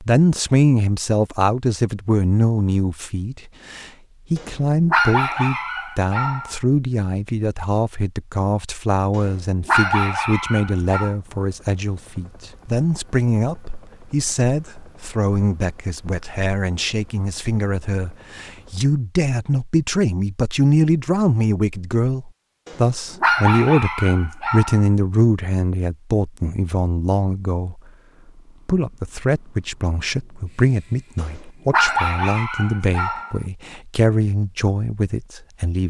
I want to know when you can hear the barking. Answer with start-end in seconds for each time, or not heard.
4.3-6.5, 9.2-11.2, 22.6-24.9, 31.1-33.4.